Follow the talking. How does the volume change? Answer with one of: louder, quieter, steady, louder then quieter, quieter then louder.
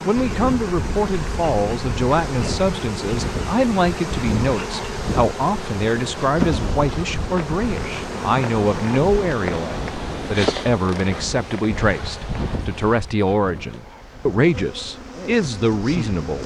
steady.